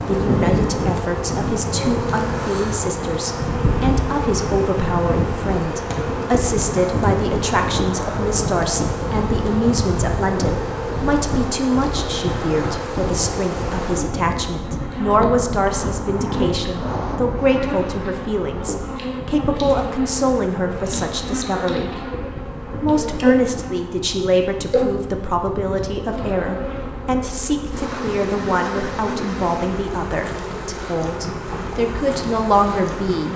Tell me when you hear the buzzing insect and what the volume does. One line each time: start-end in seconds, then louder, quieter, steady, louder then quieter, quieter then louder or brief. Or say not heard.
0.0-33.3 steady.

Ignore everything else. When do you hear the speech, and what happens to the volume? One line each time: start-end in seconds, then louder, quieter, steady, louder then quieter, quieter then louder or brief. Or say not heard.
0.1-33.3 steady.